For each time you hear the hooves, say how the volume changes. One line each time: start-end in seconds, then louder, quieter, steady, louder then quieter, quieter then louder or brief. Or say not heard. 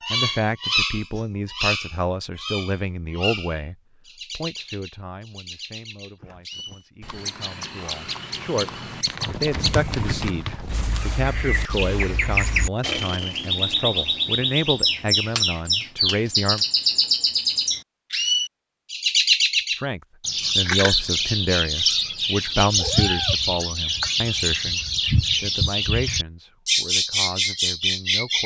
6.2-11.1 louder.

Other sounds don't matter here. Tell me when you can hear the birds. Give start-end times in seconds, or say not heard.
0.0-28.4.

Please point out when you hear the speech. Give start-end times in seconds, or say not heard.
0.1-16.6, 19.7-28.4.